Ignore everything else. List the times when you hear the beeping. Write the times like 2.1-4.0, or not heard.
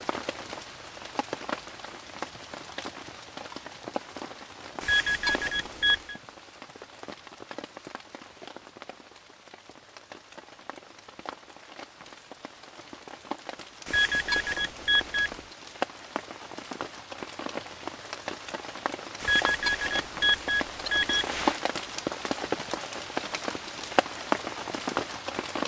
4.8-6.2, 13.8-15.4, 19.2-21.6.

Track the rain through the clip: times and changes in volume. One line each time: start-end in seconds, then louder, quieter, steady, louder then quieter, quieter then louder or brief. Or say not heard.
0.0-25.6 quieter then louder.